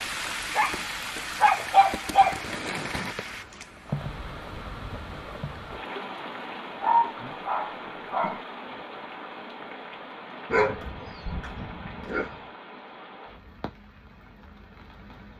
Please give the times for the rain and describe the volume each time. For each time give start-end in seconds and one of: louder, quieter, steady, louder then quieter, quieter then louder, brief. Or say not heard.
0.0-15.3 quieter.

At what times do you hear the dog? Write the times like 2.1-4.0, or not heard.
0.6-2.5, 6.8-8.4, 10.5-12.3.